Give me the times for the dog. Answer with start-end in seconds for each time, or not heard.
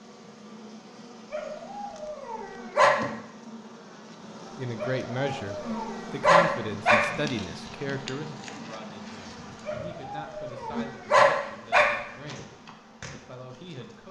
1.3-3.0, 4.8-7.1, 9.7-11.9.